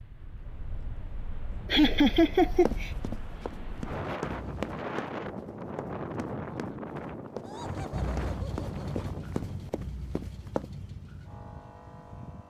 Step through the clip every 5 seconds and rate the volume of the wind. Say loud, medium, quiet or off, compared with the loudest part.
loud, loud, off.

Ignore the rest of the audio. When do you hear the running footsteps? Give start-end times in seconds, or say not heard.
2.3-10.7.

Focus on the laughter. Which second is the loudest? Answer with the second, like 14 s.
2 s.